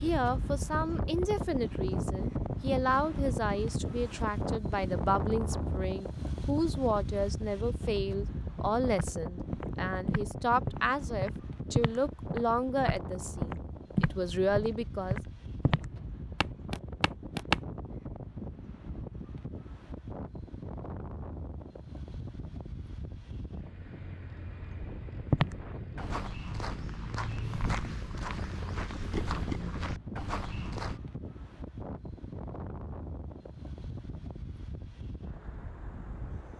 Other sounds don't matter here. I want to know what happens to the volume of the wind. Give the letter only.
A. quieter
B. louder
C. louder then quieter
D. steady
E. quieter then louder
A.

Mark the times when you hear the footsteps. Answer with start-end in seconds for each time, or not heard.
8.9-17.6, 25.2-31.0.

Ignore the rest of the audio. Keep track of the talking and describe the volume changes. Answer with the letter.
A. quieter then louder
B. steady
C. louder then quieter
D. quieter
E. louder
B.